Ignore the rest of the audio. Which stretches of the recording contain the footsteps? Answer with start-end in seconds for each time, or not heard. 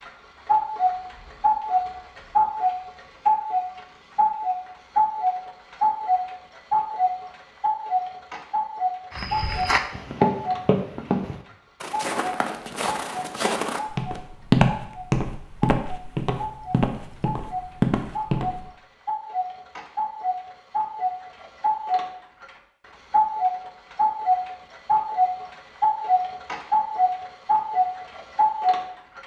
9.1-18.6.